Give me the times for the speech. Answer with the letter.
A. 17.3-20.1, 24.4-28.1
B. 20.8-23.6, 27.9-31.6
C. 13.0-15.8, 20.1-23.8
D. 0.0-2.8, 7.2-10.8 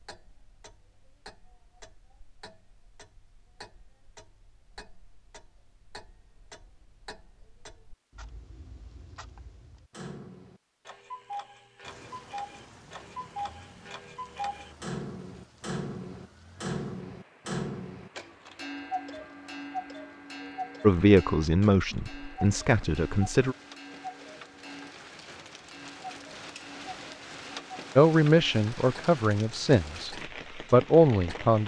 B.